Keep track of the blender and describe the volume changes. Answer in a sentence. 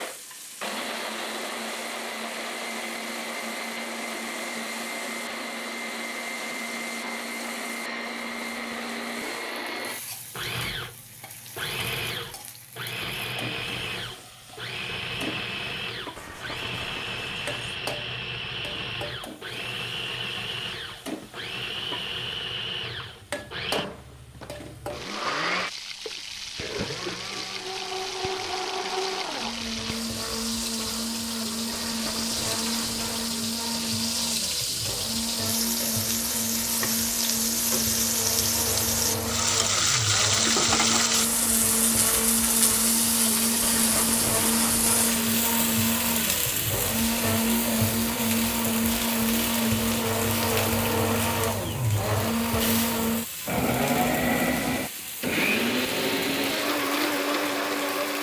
The loudness of the blender goes up.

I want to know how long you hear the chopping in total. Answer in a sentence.
The chopping can't be heard in this clip.